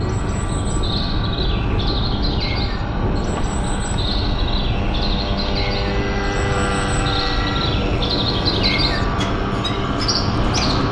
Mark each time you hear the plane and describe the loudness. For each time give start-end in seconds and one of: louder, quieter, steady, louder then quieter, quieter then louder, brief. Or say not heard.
0.0-10.8 steady.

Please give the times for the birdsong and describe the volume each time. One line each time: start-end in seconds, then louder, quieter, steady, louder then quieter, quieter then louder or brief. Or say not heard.
0.0-10.8 louder.